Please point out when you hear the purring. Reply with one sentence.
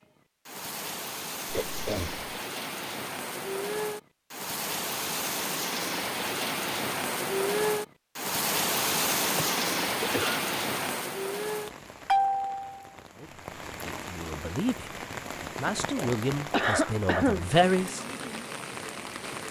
You can't hear the purring here.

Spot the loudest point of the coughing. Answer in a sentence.
The loudest moment of the coughing is at 17 seconds.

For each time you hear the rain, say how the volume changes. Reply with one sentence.
The rain can be heard from 0.0 to 19.4 s, getting louder then quieter.